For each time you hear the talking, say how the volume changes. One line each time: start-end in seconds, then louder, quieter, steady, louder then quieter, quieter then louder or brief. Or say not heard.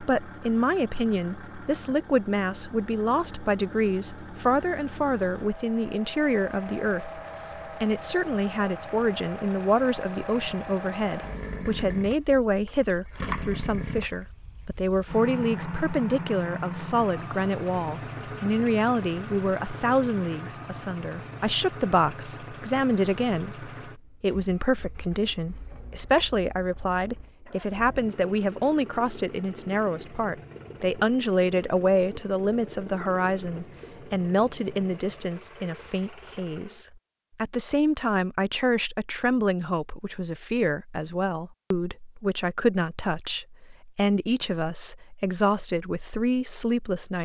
0.0-7.2 steady
7.8-47.2 steady.